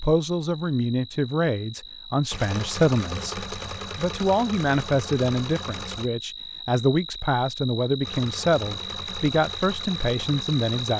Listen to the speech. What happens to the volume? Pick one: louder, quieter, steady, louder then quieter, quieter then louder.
steady.